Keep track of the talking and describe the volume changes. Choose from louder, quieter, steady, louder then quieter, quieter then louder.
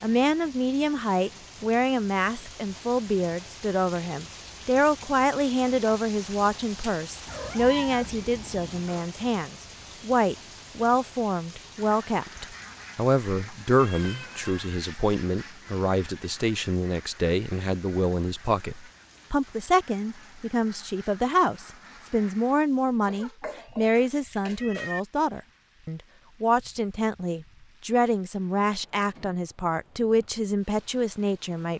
steady.